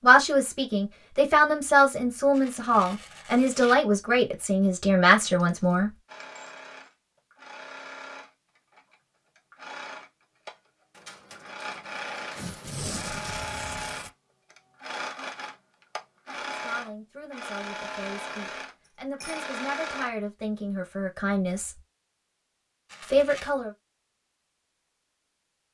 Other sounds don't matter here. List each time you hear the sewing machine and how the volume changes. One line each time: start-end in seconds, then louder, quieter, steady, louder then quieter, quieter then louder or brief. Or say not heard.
6.0-20.1 louder.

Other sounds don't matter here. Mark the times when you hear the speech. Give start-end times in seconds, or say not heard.
0.0-5.9, 16.4-21.8, 23.0-23.7.